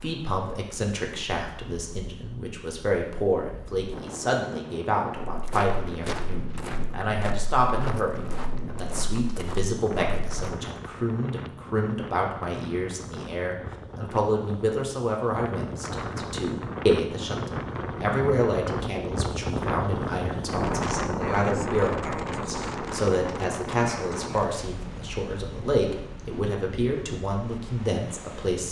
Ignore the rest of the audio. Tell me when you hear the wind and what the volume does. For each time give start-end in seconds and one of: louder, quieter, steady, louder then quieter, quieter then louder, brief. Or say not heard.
0.0-28.6 louder then quieter.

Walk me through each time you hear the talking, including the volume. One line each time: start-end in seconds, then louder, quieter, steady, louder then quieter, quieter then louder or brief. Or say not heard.
0.0-28.6 steady.